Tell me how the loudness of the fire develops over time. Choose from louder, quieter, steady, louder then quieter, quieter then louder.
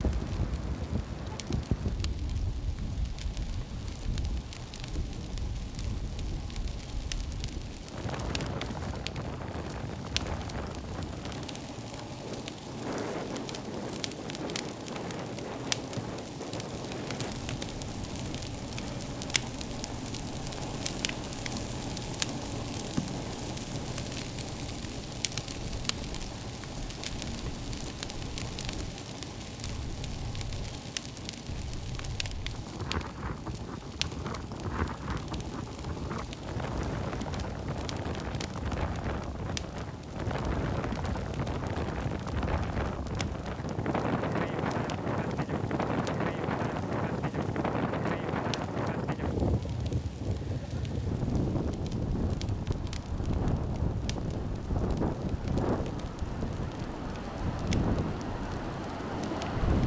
louder then quieter.